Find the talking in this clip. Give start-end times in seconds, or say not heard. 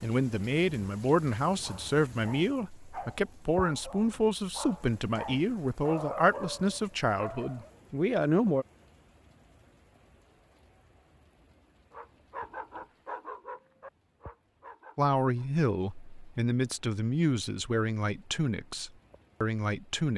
0.0-8.7, 14.9-20.1.